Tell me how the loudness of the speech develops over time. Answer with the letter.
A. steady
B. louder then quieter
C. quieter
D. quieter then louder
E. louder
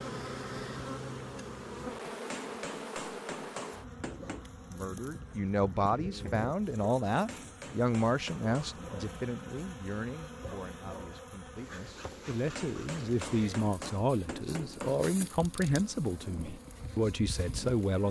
D.